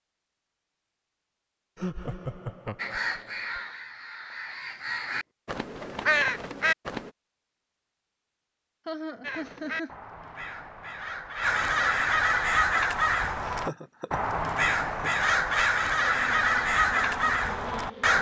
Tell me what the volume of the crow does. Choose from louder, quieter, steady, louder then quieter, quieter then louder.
louder.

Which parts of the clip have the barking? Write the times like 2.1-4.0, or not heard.
not heard.